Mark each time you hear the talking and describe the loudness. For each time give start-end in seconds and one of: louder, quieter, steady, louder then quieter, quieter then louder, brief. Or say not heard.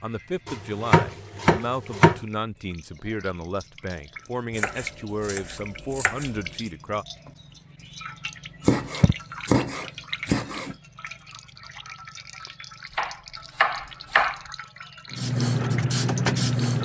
0.0-7.0 steady.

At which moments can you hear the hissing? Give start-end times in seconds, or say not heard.
15.1-16.8.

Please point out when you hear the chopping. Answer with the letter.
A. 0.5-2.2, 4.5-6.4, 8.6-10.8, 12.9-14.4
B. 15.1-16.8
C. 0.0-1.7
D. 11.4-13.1
A.